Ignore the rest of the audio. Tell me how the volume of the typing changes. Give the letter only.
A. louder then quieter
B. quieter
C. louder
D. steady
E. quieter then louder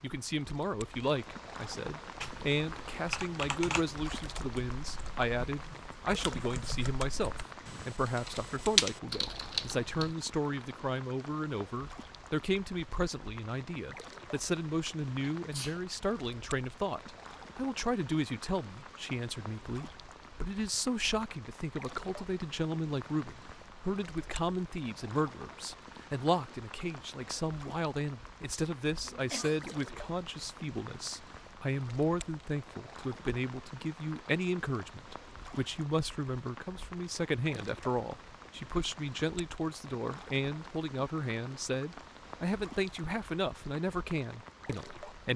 E.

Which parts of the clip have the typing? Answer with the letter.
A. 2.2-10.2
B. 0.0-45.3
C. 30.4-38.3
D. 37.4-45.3
A.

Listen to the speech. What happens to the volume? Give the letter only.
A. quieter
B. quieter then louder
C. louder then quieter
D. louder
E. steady
E.